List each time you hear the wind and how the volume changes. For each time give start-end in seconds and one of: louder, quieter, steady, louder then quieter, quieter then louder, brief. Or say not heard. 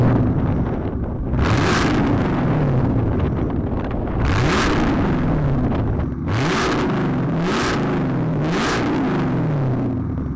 0.0-6.1 steady.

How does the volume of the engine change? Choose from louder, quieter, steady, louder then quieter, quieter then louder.
steady.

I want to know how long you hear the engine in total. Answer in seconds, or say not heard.
10 s.